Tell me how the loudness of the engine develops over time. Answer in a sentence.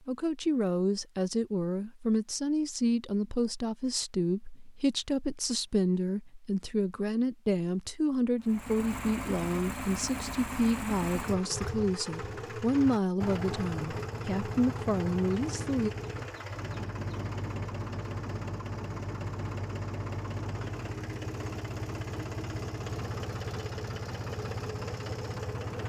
The loudness of the engine stays about the same.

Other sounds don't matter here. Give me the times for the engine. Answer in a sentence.
You can hear the engine from 8.4 to 25.8 s.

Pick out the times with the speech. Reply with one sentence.
You can hear the speech from 0.1 to 15.9 s.